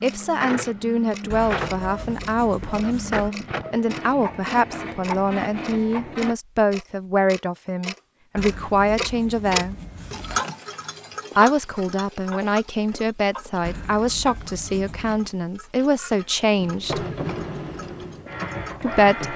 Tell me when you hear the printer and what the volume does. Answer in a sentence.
You can hear the printer from 0.0 to 6.3 s, at a steady volume; and briefly from 16.6 to 19.3 s.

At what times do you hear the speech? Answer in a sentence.
The speech can be heard from 0.0 to 9.8 s, from 11.3 to 17.1 s and from 18.8 to 19.3 s.